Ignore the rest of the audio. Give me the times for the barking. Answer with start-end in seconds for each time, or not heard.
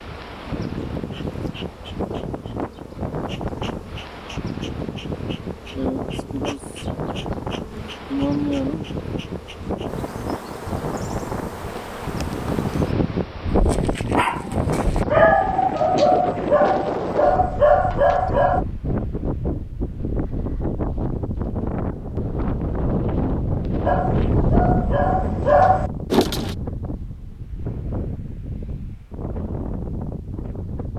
13.4-18.6, 23.9-26.6.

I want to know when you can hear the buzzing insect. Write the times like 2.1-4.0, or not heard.
0.0-13.2.